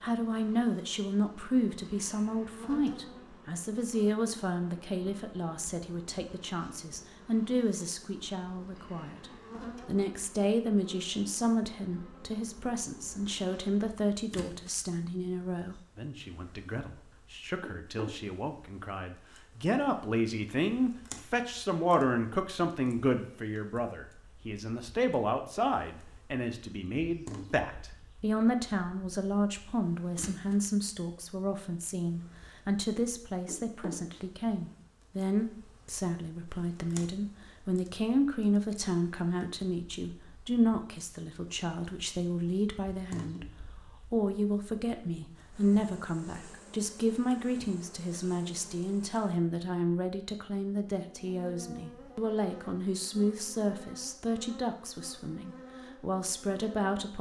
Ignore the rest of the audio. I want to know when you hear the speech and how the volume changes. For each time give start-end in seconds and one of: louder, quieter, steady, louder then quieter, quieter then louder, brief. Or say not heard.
0.0-57.1 steady.